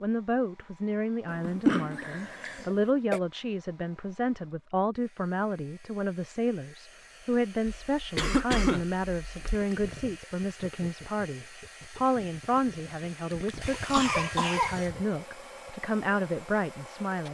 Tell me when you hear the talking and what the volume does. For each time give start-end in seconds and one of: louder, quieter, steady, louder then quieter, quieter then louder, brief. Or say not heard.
0.0-17.2 steady.